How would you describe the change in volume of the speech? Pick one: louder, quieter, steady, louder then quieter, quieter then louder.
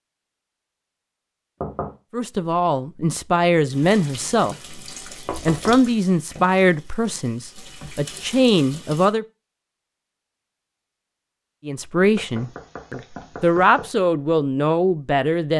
steady.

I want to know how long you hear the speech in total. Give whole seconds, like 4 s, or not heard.
11 s.